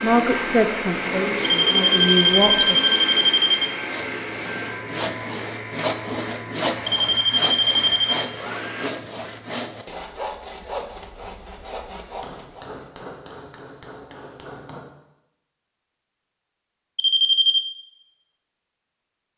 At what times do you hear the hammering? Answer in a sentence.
The hammering can be heard from 12.2 to 14.8 s.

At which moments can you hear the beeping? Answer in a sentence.
You can hear the beeping from 1.4 to 3.7 s, from 6.8 to 8.2 s and from 16.9 to 17.7 s.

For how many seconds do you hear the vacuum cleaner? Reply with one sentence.
You can hear the vacuum cleaner for 9 seconds altogether.